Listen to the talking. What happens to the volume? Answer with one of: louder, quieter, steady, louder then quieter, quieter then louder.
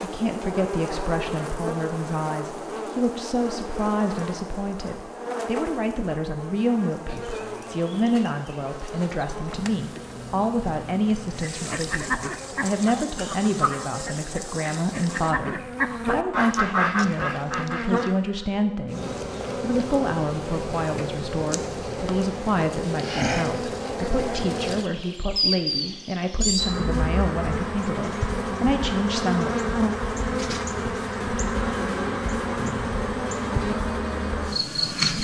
steady.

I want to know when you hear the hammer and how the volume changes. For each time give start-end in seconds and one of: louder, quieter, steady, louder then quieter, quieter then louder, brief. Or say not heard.
not heard.